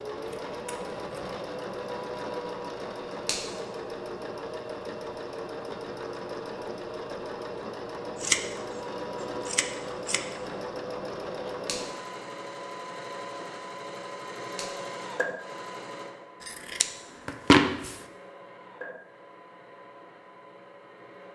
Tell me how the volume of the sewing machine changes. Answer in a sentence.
The loudness of the sewing machine goes down.